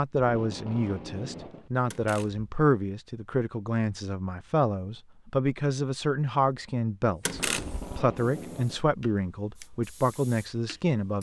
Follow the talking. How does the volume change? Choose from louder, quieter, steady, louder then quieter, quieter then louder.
steady.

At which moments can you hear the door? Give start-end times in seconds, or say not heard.
1.9-2.5, 7.2-7.9.